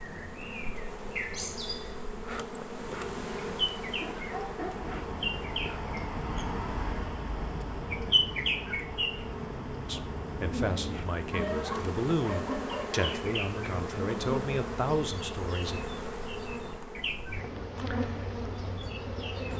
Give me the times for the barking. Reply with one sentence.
You can hear the barking from 4.0 to 5.0 s and from 11.3 to 13.0 s.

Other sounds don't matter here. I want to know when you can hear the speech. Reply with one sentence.
You can hear the speech from 9.8 to 15.8 s.